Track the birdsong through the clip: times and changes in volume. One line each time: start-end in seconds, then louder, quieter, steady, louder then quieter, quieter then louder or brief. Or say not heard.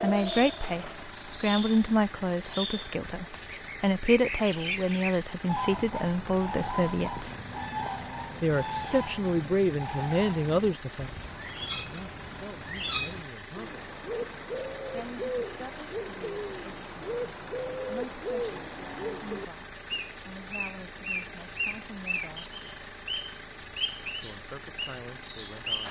0.0-25.8 steady.